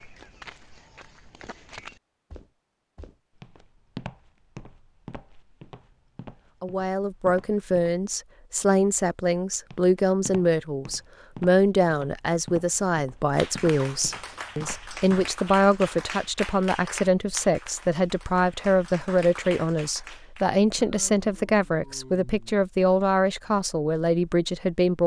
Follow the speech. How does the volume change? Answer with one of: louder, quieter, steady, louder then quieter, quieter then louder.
steady.